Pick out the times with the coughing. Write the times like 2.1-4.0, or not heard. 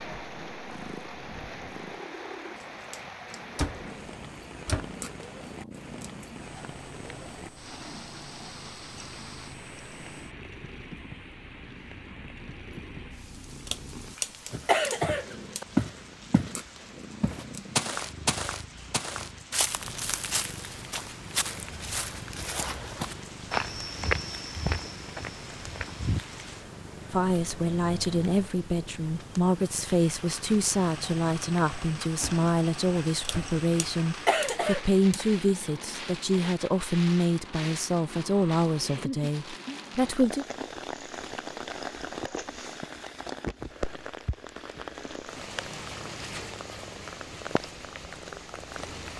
13.7-15.7, 33.2-35.2.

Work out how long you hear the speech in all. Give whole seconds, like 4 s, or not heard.
13 s.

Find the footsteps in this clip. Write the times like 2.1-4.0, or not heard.
14.5-26.2.